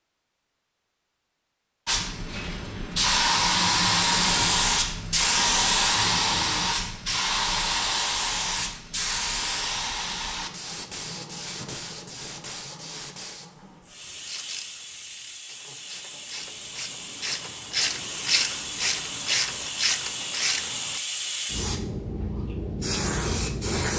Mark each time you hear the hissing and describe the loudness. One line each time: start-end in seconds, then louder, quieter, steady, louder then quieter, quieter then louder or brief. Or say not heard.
1.9-23.9 quieter then louder.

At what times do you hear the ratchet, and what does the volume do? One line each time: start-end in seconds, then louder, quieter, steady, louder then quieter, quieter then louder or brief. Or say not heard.
14.1-21.0 louder.